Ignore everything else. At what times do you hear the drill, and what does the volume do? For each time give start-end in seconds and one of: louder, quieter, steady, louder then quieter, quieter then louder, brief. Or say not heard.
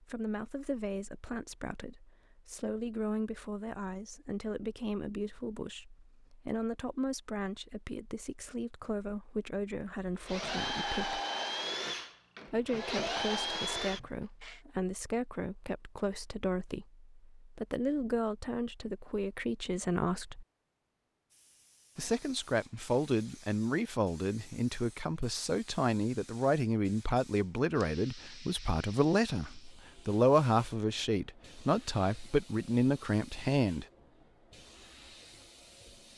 10.2-14.6 quieter then louder.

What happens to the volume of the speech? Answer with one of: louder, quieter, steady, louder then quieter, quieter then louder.
louder.